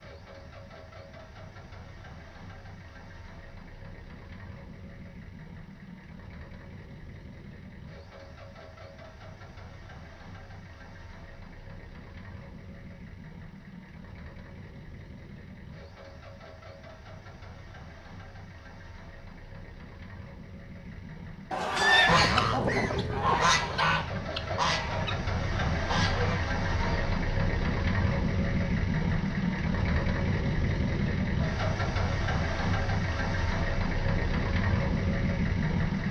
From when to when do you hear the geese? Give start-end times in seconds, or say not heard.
21.8-27.6.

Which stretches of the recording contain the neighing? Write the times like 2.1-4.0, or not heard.
21.5-22.2.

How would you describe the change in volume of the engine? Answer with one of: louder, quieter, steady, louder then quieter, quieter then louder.
louder.